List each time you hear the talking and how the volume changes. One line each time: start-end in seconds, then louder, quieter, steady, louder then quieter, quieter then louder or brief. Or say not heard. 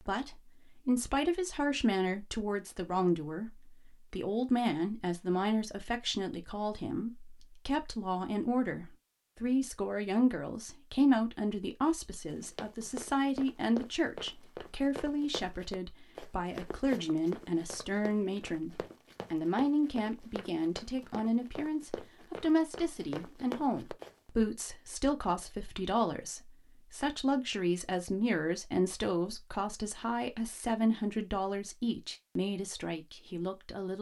0.1-33.9 steady.